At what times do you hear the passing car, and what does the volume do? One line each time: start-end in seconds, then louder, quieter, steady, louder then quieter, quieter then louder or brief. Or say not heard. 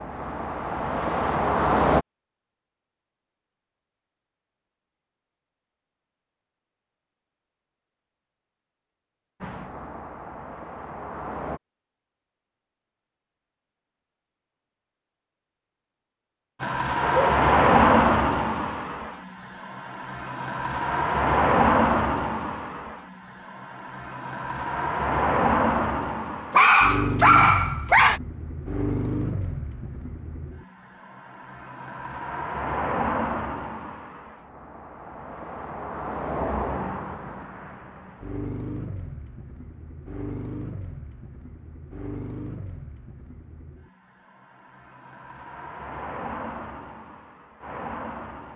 0.0-2.0 brief
9.4-11.6 brief
16.6-48.5 quieter.